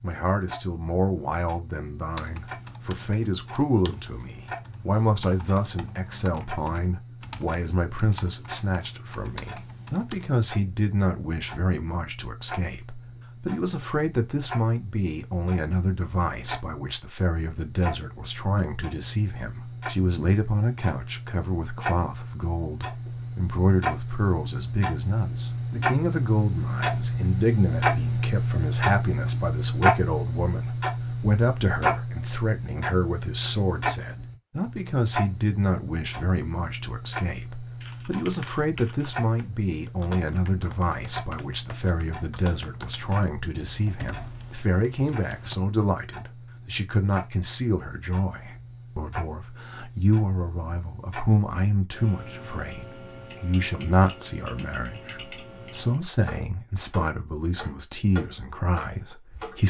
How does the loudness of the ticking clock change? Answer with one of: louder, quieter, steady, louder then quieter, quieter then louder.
louder then quieter.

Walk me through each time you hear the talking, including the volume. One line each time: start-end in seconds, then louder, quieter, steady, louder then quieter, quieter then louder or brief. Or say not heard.
0.0-59.6 steady.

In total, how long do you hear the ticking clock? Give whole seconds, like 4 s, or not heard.
59 s.